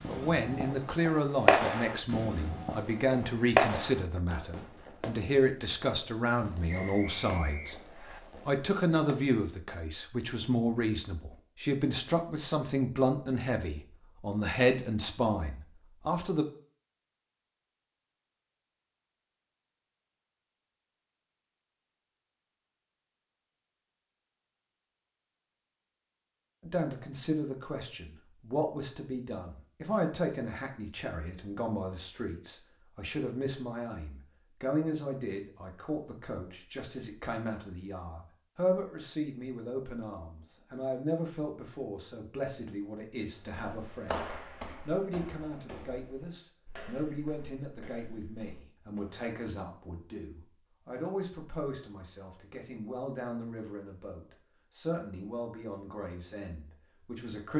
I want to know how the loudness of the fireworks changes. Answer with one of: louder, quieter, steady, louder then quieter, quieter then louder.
quieter.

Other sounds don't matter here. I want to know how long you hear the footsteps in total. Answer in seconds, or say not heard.
6 s.